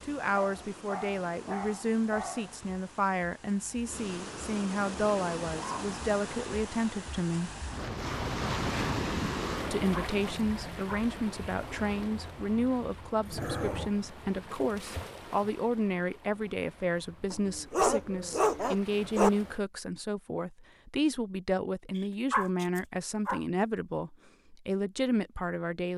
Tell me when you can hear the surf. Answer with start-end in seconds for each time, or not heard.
0.0-19.6.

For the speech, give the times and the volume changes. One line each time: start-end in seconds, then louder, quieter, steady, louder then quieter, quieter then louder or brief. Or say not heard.
0.0-7.5 steady
9.7-25.9 steady.